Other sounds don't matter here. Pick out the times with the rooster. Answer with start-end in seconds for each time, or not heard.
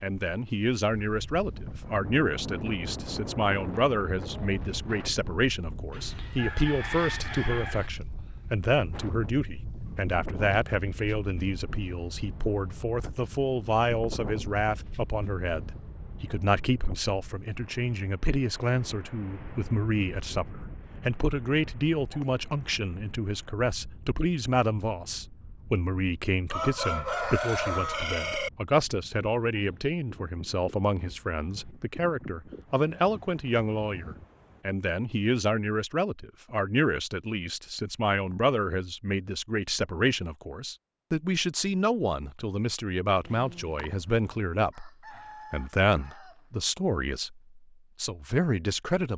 5.9-7.9, 26.5-28.5, 43.2-46.4.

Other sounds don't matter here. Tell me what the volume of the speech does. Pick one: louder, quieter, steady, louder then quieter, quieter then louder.
steady.